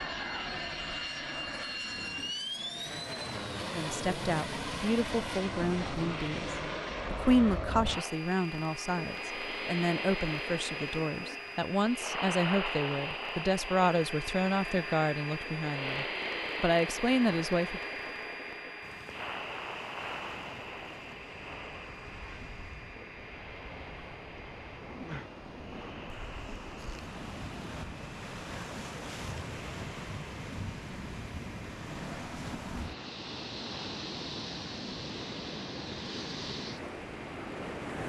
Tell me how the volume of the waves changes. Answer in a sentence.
The volume of the waves goes up.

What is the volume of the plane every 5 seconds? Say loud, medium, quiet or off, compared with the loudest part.
loud, loud, loud, loud, medium, quiet, quiet, quiet.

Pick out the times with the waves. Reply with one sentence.
You can hear the waves from 18.8 to 38.0 s.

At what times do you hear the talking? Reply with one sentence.
You can hear the talking from 3.6 to 17.8 s.